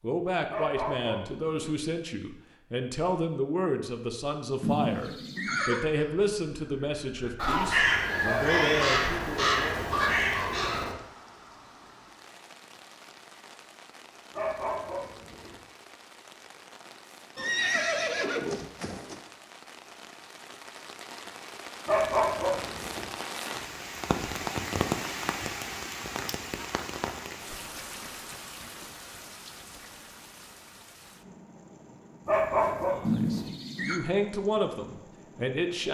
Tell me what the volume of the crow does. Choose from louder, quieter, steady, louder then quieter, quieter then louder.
louder.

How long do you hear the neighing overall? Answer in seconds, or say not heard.
4 s.